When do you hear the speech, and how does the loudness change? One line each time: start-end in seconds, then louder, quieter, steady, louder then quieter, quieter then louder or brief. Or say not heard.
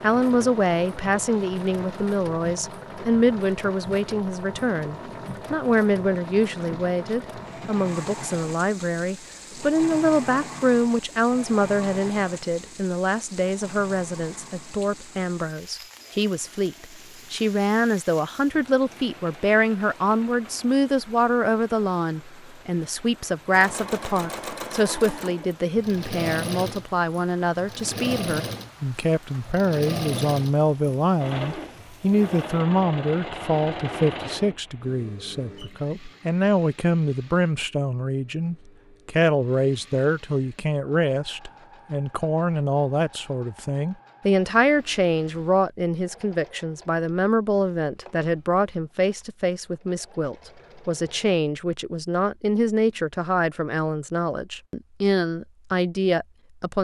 0.0-56.7 steady.